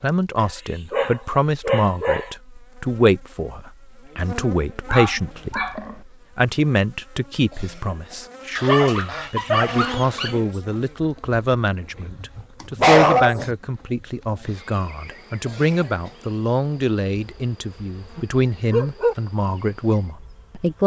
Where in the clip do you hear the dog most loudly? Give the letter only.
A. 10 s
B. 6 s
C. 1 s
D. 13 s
D.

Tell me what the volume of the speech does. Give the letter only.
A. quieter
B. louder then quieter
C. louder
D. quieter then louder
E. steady
E.